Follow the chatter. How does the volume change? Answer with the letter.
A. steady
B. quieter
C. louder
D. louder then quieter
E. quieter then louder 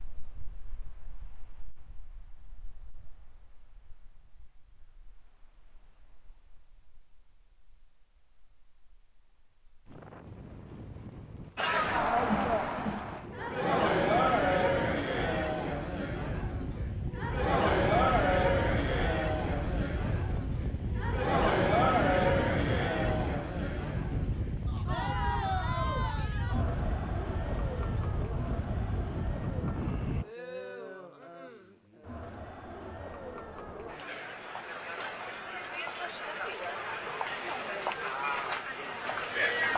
E.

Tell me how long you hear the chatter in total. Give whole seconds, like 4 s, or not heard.
28 s.